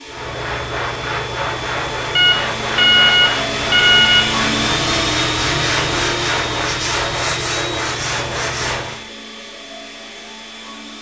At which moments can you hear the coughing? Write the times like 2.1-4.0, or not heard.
not heard.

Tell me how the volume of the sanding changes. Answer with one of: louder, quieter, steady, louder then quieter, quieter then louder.
steady.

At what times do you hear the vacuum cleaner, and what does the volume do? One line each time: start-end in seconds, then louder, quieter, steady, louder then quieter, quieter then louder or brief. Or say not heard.
0.0-10.9 louder then quieter.